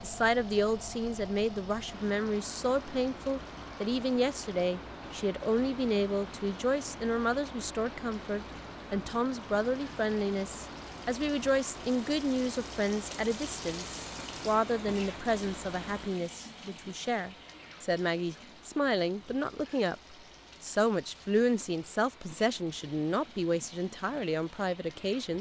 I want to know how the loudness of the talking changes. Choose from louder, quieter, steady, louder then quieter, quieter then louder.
steady.